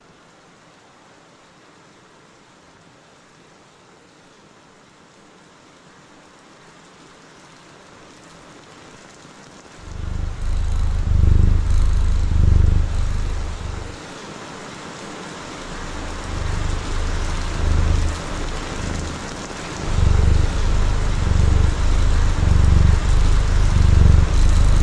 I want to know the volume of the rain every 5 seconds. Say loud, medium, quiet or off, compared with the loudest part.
quiet, quiet, medium, loud, loud.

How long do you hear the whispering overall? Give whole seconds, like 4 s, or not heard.
not heard.